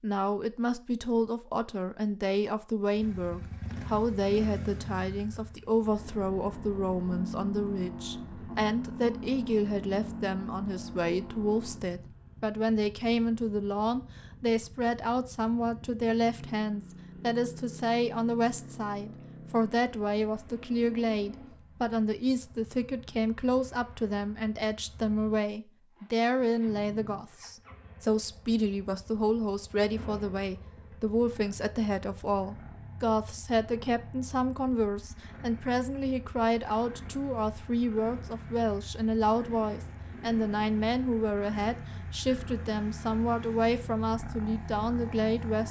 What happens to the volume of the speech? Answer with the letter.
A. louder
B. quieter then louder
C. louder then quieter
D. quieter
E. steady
E.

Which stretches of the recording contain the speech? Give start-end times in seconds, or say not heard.
0.0-45.6.